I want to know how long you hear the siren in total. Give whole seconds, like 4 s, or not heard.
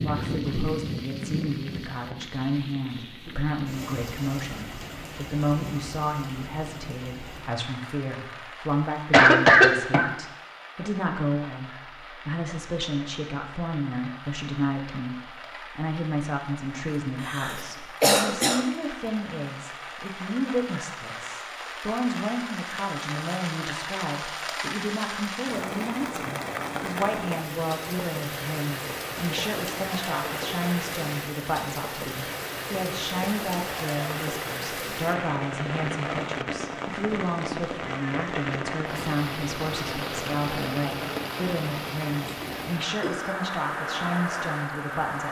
not heard.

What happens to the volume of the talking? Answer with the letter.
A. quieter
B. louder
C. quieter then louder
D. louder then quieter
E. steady
E.